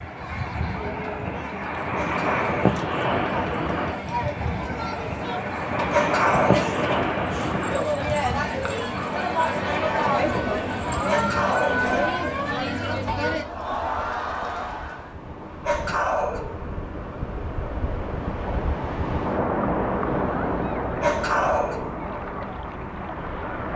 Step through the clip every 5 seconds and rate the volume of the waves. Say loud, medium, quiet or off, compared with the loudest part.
loud, loud, medium, loud, loud.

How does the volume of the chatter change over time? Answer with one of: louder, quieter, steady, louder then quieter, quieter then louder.
louder.